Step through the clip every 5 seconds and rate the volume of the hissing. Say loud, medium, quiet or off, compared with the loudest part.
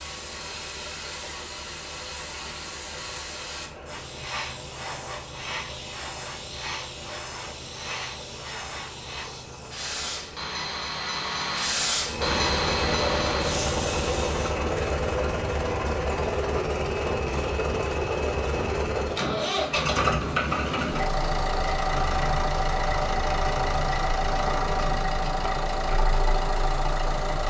medium, medium, loud, off, off, off.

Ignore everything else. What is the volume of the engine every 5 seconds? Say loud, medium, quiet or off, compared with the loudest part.
quiet, quiet, loud, loud, loud, loud.